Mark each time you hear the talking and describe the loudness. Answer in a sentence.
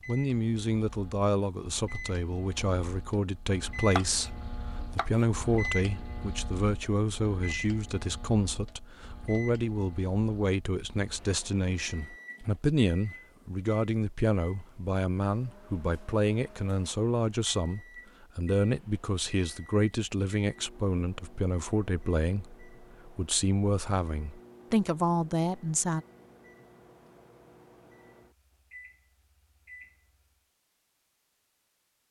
The talking can be heard from 0.1 to 26.1 s, at a steady volume.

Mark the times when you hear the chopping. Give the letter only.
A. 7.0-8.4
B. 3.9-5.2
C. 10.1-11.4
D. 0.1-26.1
B.